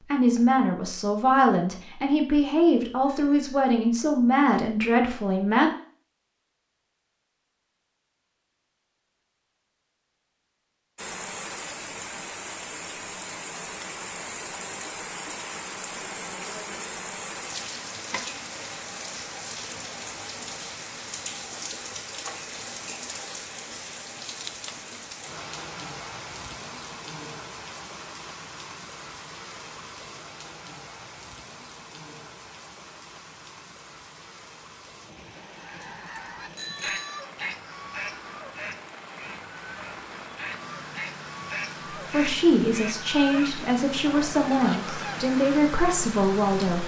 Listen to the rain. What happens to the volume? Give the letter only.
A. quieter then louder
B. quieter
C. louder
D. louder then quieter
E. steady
A.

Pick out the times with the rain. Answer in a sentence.
The rain can be heard from 10.9 to 46.8 s.